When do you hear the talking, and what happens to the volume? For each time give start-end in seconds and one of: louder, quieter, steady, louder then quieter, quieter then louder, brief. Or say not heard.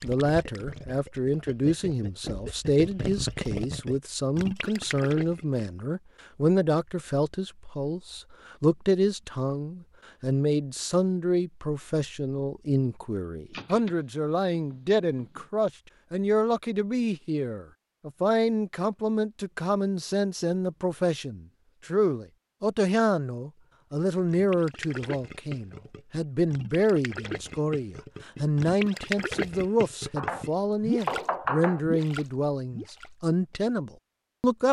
0.0-34.6 steady.